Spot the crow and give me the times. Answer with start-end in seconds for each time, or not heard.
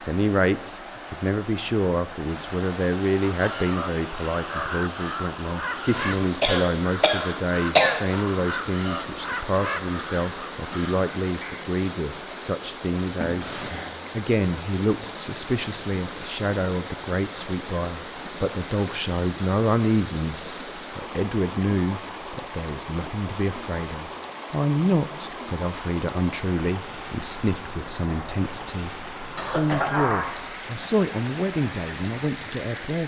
3.2-11.7.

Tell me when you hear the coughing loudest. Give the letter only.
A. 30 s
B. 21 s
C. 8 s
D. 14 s
C.